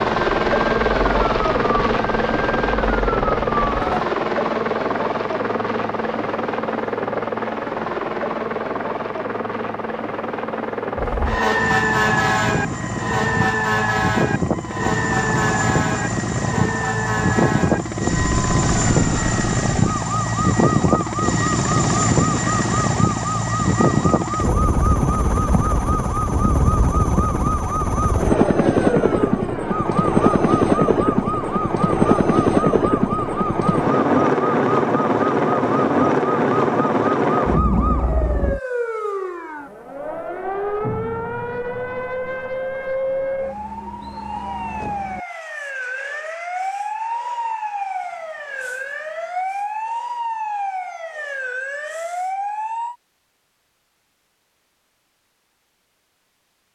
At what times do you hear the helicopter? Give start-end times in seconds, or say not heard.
0.0-38.6.